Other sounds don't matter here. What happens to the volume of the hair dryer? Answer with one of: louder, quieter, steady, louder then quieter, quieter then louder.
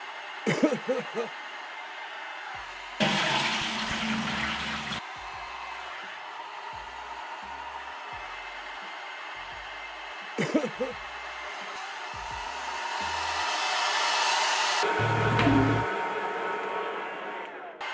louder.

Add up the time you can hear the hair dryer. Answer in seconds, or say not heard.
18 s.